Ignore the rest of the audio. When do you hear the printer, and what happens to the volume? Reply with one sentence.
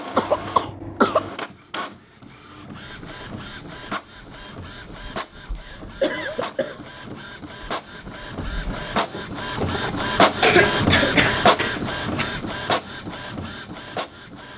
You can hear the printer from 0.0 to 14.5 s, getting louder.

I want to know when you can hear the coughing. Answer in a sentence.
You can hear the coughing from 0.1 to 1.3 s, from 5.5 to 6.8 s and from 10.4 to 12.3 s.